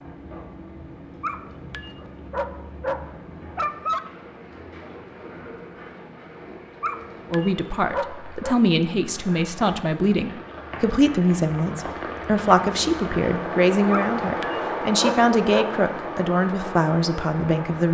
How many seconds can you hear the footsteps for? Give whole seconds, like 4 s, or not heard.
not heard.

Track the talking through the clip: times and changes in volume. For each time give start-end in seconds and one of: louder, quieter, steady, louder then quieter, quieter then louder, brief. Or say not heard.
7.3-17.8 steady.